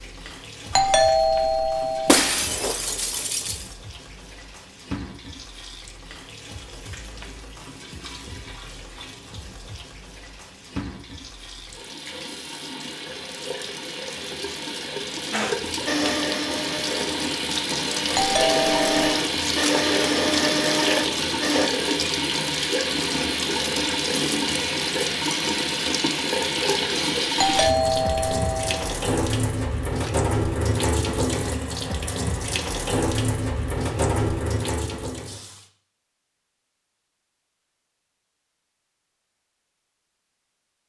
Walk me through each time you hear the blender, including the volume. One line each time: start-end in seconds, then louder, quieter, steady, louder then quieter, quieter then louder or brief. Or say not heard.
15.3-21.7 quieter then louder.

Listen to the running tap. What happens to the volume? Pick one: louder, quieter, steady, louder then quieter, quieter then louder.
louder.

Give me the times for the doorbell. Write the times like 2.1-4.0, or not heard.
0.7-2.2, 18.1-19.1, 27.4-28.9.